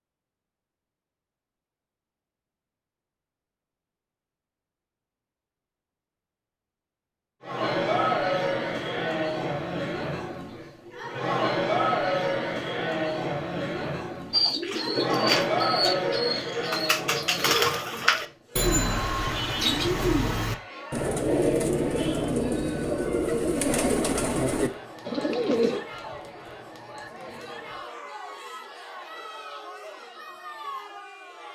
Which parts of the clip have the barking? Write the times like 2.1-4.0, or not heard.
not heard.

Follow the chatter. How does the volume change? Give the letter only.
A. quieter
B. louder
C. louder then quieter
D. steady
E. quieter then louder
A.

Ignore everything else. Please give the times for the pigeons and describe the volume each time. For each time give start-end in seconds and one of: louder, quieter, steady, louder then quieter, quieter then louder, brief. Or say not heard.
14.3-25.8 steady.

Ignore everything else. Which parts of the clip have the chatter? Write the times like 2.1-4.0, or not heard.
7.4-31.4.